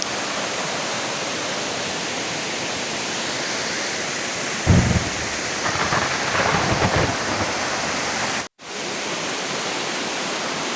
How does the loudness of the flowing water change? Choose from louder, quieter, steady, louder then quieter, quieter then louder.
steady.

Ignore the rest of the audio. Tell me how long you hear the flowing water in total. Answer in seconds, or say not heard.
11 s.